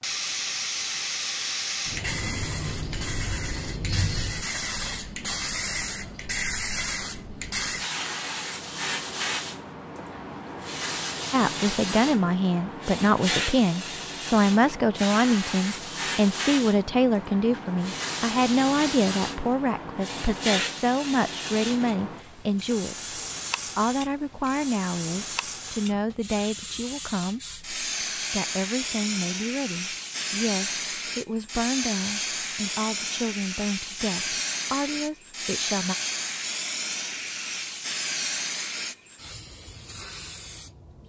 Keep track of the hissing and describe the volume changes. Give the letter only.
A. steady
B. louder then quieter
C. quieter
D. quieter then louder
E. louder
A.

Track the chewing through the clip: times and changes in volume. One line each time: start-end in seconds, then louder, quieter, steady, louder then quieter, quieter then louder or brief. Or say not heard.
not heard.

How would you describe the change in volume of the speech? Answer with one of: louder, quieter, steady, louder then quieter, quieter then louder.
quieter.